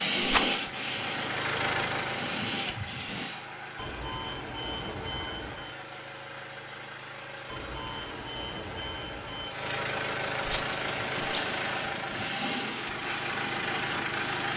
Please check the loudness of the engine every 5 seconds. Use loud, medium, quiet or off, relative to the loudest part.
loud, medium, loud.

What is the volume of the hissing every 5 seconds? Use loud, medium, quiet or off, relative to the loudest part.
loud, off, medium.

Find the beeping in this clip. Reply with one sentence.
The beeping can be heard from 3.8 to 5.8 s and from 7.5 to 9.5 s.